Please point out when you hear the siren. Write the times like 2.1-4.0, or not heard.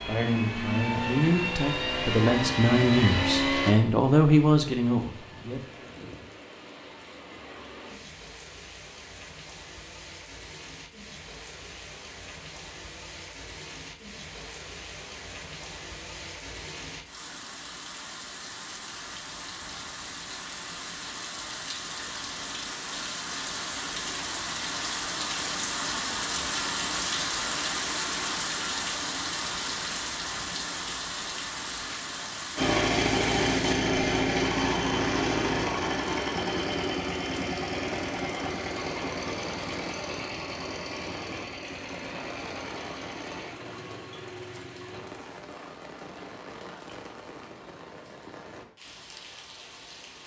not heard.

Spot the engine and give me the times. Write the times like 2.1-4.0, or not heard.
0.0-3.8, 32.5-45.0.